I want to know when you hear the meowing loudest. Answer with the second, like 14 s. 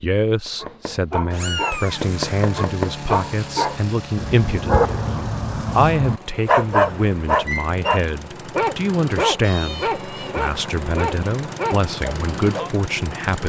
2 s.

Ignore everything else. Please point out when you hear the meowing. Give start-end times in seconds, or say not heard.
1.3-2.1, 9.4-10.4.